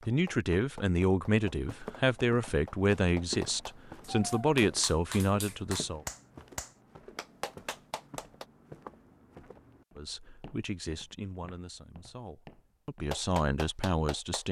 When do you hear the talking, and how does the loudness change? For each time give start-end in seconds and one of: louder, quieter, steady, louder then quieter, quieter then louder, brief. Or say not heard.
0.1-6.0 steady
9.9-14.4 quieter then louder.